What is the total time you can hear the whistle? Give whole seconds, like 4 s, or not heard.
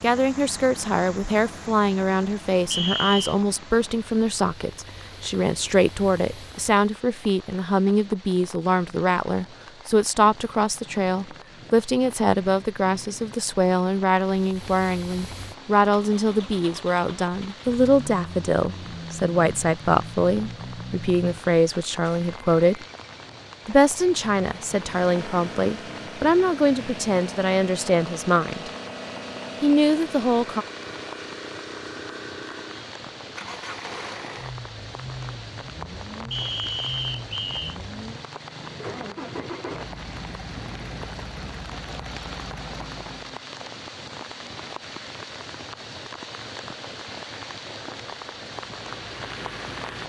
2 s.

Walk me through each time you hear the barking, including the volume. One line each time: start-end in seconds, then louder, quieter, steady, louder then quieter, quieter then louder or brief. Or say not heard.
not heard.